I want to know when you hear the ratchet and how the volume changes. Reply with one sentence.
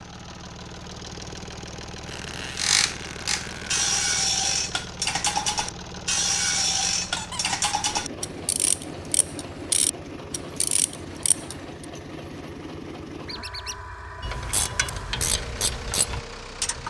You can hear the ratchet from 2.5 to 11.8 s, getting quieter; and briefly from 14.2 to 16.8 s.